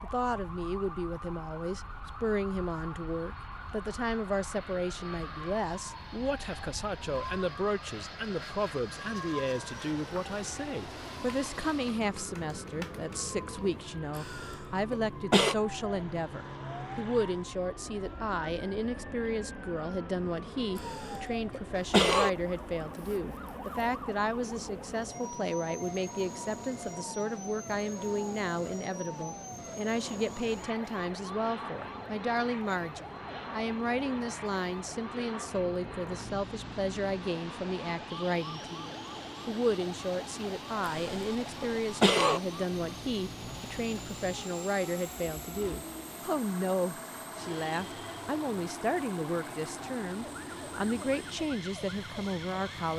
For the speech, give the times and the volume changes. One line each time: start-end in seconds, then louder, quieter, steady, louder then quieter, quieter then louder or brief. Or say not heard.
0.0-52.9 steady.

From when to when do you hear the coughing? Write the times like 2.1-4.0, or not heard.
14.2-15.6, 20.8-22.3, 40.9-42.4.